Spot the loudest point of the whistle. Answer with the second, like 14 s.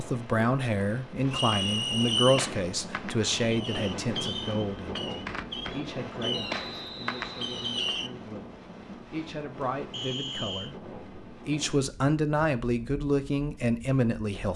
2 s.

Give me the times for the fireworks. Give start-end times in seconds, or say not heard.
1.4-8.1.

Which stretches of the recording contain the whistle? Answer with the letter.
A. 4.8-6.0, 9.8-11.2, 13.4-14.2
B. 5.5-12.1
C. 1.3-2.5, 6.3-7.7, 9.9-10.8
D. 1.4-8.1
C.